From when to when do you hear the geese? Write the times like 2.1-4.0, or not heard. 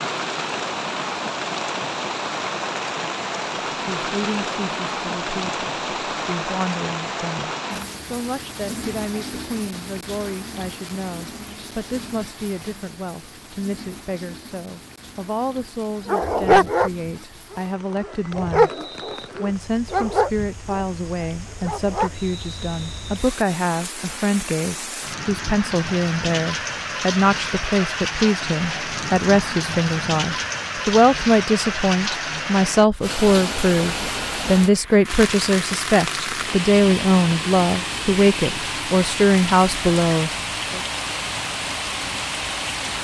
not heard.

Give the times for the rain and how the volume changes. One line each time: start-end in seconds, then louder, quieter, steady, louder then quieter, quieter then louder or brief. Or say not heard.
0.0-42.9 quieter then louder.